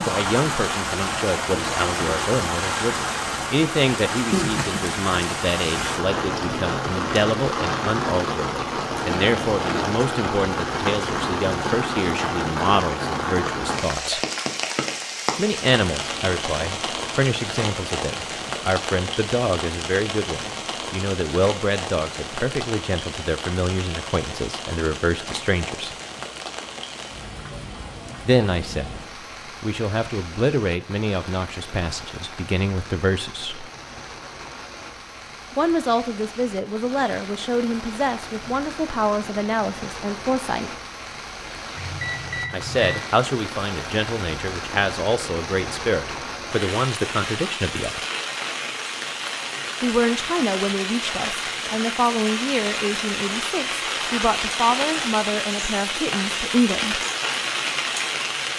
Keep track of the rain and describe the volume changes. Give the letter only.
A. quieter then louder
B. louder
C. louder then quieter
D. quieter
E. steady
A.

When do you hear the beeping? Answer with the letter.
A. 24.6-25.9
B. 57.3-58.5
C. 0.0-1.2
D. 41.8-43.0
D.